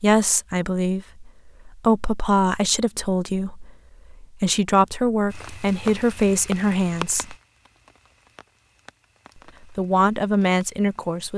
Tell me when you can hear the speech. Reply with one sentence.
You can hear the speech from 0.0 to 7.3 s and from 9.7 to 11.3 s.